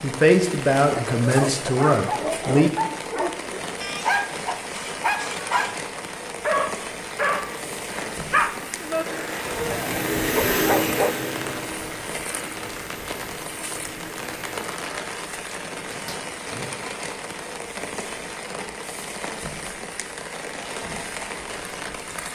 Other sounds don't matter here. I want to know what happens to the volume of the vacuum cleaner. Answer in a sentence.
The loudness of the vacuum cleaner goes up, then down.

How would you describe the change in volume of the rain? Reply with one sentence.
The volume of the rain stays about the same.